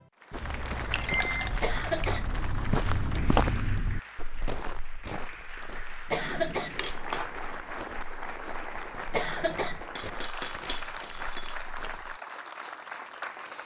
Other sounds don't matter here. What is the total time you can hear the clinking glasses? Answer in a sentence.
The clinking glasses can be heard for 5 seconds in total.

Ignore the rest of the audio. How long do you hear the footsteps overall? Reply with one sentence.
You can hear the footsteps for 12 seconds altogether.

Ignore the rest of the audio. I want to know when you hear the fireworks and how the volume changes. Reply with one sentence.
You can't hear the fireworks here.